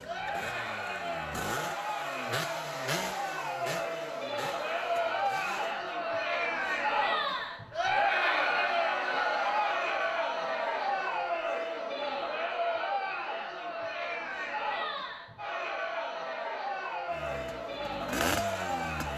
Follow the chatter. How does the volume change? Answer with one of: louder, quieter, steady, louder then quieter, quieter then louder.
louder then quieter.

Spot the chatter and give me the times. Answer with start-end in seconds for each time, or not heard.
0.0-19.1.